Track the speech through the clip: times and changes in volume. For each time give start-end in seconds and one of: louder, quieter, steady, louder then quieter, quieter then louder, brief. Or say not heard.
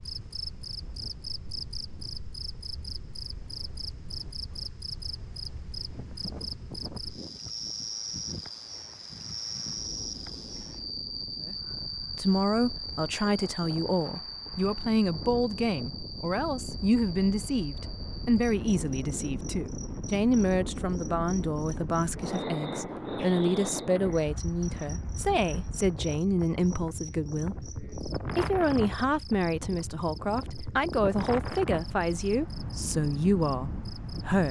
11.4-34.4 steady.